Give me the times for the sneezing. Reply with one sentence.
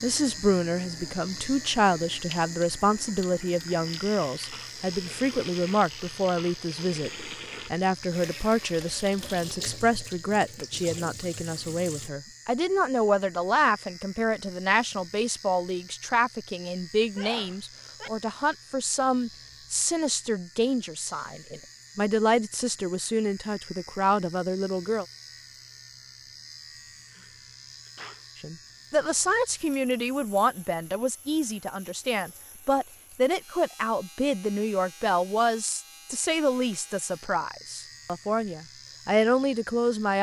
You can hear the sneezing from 17.1 to 18.1 s and from 27.1 to 28.2 s.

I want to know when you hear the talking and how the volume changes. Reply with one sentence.
You can hear the talking from 0.0 to 25.1 s, at a steady volume; and from 28.4 to 40.1 s, at a steady volume.